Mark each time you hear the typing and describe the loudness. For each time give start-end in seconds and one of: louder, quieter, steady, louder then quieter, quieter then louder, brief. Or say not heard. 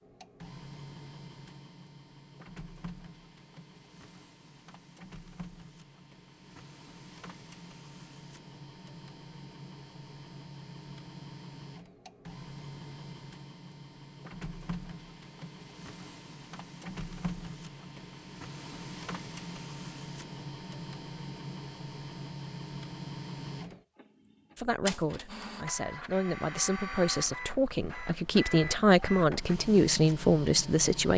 not heard.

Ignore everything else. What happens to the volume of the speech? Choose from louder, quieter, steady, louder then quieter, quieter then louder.
louder.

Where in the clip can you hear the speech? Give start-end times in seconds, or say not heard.
24.6-31.1.